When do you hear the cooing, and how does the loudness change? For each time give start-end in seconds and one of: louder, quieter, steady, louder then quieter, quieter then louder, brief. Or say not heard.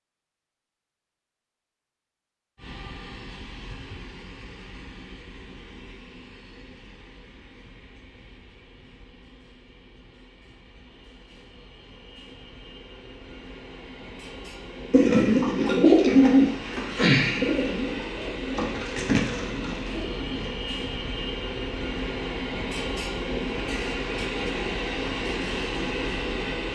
14.9-20.5 quieter.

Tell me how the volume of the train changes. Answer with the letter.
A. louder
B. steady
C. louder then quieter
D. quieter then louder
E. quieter
D.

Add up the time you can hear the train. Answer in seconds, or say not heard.
24 s.